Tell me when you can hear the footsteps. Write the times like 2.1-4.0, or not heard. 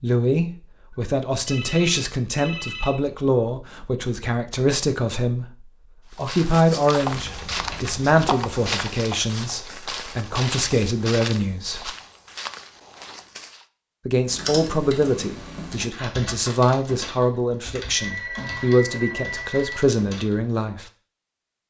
6.1-13.7.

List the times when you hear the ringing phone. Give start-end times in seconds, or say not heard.
1.4-3.0, 17.9-19.9.